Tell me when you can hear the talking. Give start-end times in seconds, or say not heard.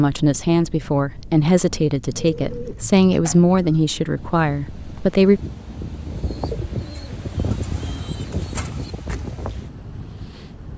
0.0-5.4.